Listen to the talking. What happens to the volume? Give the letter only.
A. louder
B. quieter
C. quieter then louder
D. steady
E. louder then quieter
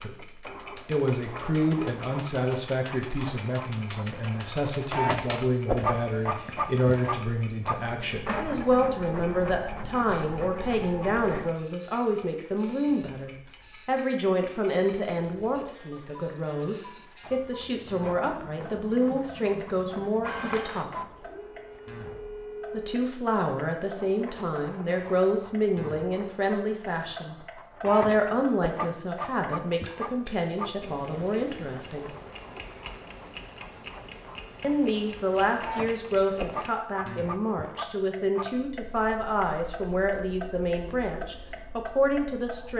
D.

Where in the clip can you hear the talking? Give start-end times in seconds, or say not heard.
0.0-20.9, 22.7-32.1, 34.6-42.7.